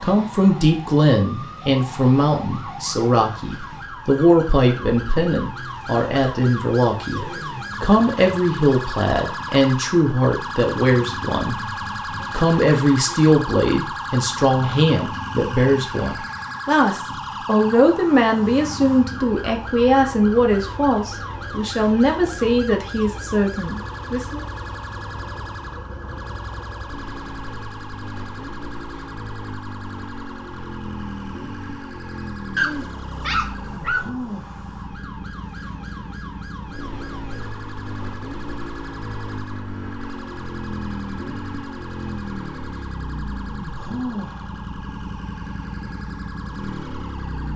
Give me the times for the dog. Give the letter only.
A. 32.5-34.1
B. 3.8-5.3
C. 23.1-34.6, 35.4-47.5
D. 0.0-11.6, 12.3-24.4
A.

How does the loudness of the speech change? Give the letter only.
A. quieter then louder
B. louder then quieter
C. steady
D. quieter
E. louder
C.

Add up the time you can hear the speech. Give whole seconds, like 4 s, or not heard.
24 s.